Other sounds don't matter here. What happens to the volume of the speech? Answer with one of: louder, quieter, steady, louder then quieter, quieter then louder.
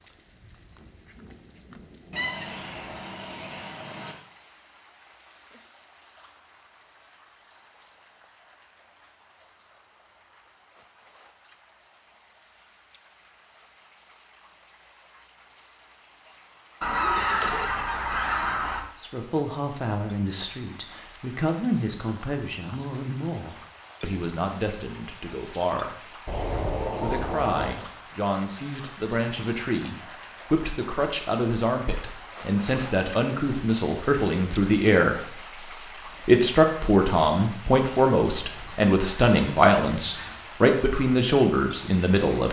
louder.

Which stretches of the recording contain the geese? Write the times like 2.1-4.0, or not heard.
2.1-4.2, 16.8-18.8, 26.2-27.8, 38.4-40.4.